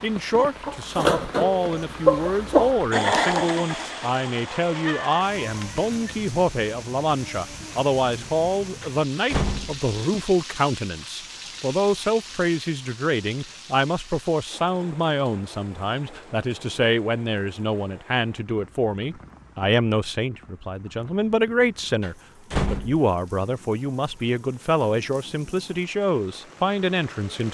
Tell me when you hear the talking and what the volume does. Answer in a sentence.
The talking can be heard from 0.0 to 27.4 s, at a steady volume.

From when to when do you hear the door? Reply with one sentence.
You can hear the door from 8.8 to 10.2 s and from 22.0 to 23.0 s.